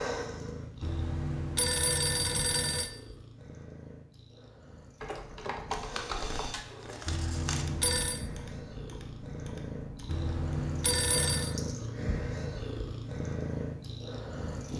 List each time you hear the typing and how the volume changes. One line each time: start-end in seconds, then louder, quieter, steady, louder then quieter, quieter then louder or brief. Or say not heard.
5.0-10.3 quieter.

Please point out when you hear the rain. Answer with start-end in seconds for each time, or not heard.
not heard.